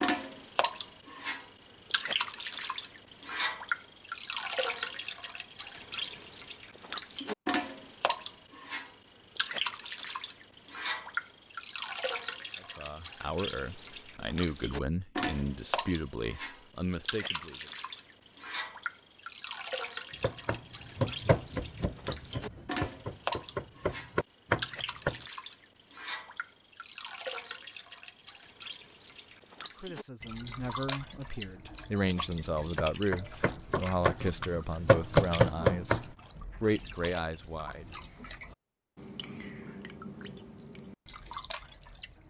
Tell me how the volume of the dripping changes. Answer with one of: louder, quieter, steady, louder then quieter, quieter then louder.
quieter.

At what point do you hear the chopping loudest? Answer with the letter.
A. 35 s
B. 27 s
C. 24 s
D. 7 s
A.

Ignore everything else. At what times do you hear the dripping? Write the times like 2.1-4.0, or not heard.
0.0-42.2.